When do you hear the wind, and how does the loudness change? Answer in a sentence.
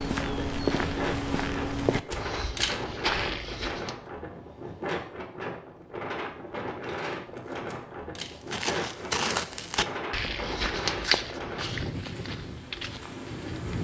You can hear the wind from 0.1 to 13.7 s, at a steady volume.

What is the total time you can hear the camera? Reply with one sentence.
The camera can be heard for 2 seconds in total.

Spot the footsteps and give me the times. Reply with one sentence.
You can hear the footsteps from 0.0 to 4.0 s and from 8.4 to 13.7 s.